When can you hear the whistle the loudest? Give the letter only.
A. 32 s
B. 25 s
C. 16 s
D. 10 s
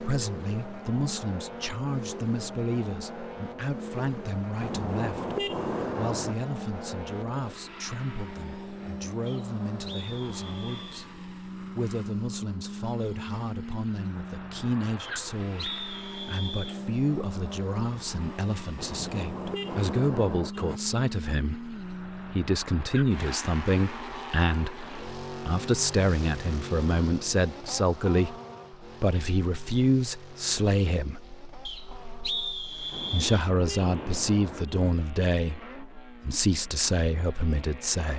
A.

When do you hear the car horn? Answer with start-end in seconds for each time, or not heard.
4.6-6.3, 18.8-20.8, 32.9-35.0.